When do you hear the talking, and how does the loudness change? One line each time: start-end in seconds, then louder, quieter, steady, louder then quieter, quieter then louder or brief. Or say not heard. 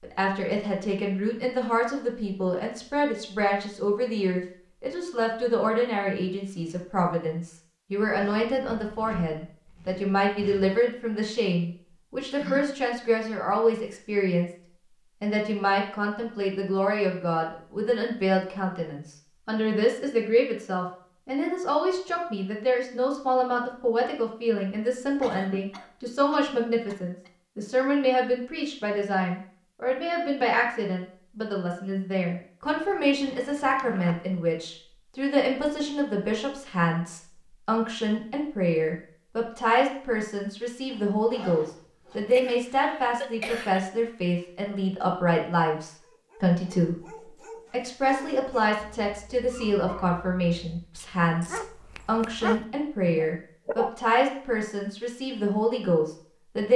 0.0-14.5 steady
15.2-56.7 steady.